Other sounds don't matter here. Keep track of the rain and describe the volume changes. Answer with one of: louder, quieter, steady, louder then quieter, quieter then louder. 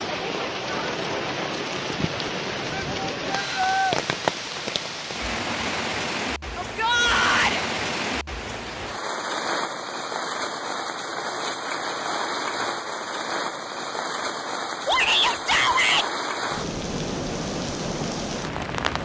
steady.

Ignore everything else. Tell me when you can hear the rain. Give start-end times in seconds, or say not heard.
0.0-19.0.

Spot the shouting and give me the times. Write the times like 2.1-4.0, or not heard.
2.7-4.0, 6.5-7.6, 14.8-16.1.